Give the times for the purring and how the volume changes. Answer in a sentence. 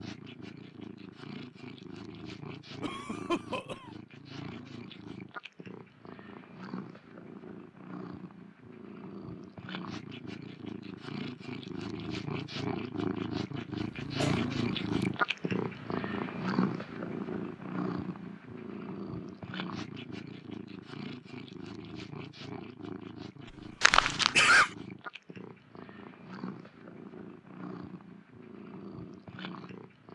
The purring can be heard from 0.0 to 30.1 s, getting louder then quieter.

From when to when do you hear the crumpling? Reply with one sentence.
You can hear the crumpling from 23.8 to 24.4 s.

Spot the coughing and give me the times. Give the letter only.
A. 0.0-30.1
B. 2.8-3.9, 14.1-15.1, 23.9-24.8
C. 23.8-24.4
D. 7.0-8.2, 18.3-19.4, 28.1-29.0
B.